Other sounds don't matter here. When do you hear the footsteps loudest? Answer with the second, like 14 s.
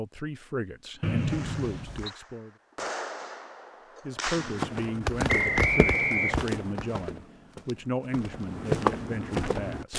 9 s.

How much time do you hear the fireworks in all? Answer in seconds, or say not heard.
6 s.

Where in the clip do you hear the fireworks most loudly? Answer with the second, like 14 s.
5 s.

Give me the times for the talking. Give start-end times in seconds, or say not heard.
0.0-2.5, 4.0-9.9.